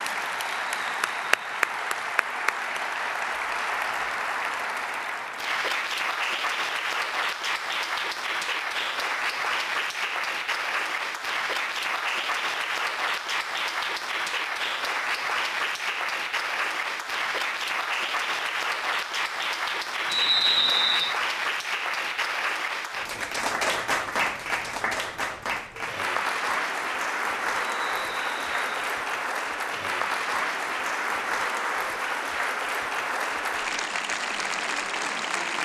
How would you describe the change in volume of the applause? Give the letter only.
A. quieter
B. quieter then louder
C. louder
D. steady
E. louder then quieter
D.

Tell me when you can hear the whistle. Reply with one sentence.
The whistle can be heard from 0.4 to 1.7 s, from 20.1 to 21.1 s and from 27.6 to 28.9 s.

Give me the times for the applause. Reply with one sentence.
You can hear the applause from 0.0 to 35.6 s.